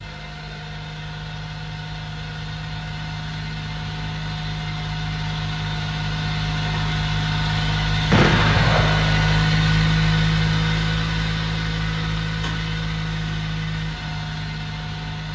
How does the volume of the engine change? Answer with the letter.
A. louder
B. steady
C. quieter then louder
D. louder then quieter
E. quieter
D.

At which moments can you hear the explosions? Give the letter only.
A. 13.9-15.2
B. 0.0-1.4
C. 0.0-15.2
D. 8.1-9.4
D.